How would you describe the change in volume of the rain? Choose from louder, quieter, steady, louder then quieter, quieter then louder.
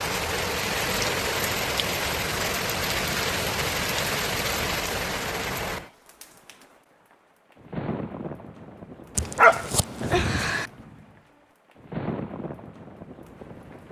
quieter.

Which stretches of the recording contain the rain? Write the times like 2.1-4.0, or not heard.
0.0-13.8.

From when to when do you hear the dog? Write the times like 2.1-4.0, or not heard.
9.2-10.7.